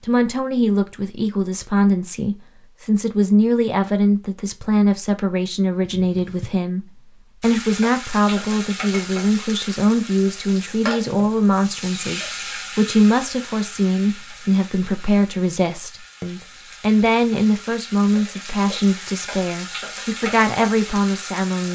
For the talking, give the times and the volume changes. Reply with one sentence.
You can hear the talking from 0.0 to 21.6 s, at a steady volume.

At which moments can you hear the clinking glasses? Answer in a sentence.
The clinking glasses can't be heard in this clip.